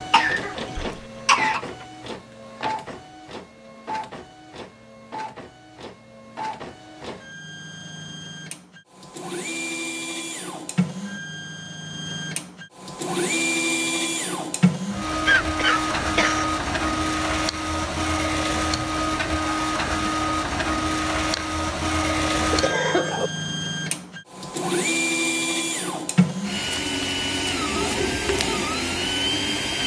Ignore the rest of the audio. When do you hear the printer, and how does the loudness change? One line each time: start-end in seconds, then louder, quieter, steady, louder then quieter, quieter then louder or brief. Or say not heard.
0.0-29.8 louder.